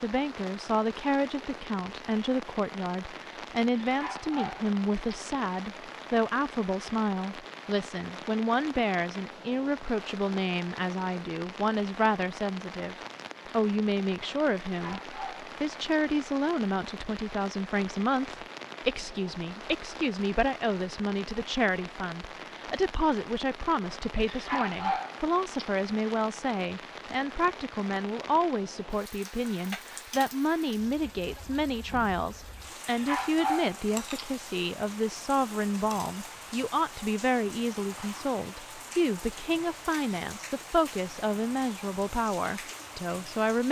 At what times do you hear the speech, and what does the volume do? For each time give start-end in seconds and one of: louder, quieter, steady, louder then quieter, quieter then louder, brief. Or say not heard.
0.0-43.6 steady.